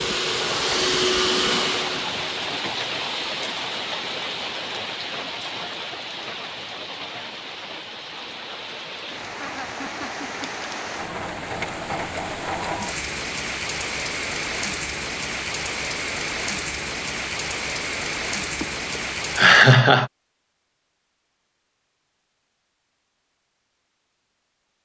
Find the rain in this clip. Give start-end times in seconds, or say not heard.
0.0-19.8.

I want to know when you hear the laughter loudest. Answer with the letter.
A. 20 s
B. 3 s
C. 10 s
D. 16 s
A.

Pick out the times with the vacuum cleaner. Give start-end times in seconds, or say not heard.
0.0-2.5.